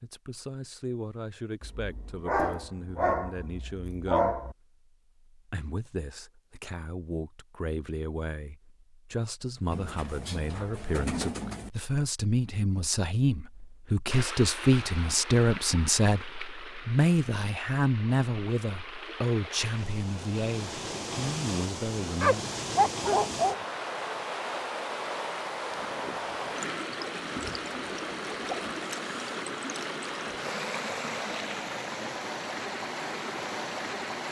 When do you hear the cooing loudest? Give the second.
11 s.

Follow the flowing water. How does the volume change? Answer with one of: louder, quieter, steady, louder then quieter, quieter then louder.
louder.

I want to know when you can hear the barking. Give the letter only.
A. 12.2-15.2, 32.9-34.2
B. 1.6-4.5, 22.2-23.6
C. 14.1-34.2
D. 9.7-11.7
B.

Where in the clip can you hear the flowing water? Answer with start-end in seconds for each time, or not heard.
14.1-34.2.